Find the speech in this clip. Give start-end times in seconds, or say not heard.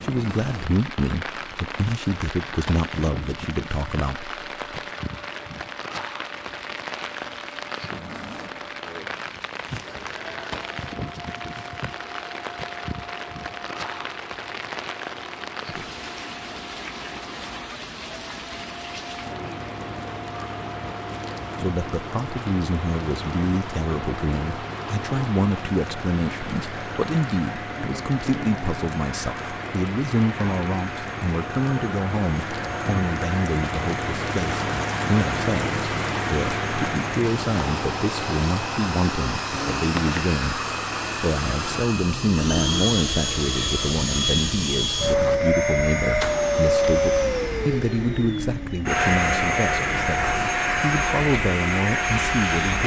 0.0-4.3, 21.6-52.8.